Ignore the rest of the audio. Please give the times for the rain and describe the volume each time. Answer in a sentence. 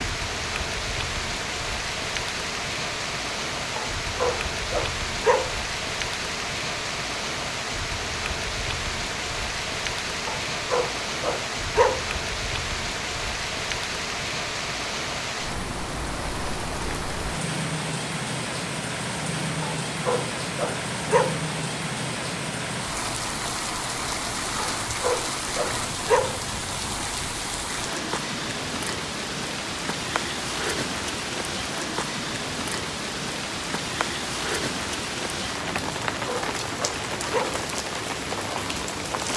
You can hear the rain from 0.0 to 39.3 s, at a steady volume.